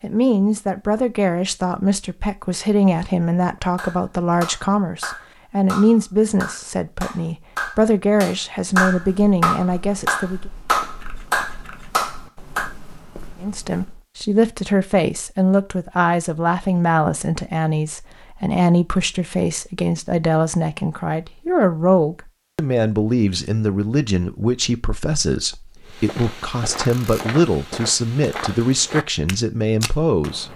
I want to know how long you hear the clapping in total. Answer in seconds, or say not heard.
9 s.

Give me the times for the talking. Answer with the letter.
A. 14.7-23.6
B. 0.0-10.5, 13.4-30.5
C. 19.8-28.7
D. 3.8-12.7
B.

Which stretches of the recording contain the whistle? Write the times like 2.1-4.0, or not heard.
not heard.